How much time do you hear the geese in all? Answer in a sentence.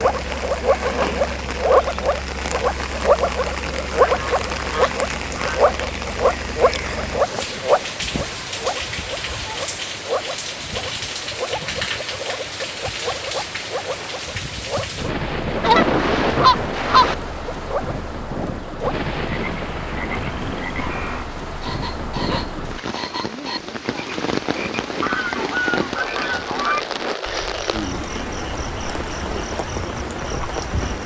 The geese can be heard for 7 seconds in total.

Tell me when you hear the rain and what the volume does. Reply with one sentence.
The rain can be heard from 0.0 to 31.0 s, at a steady volume.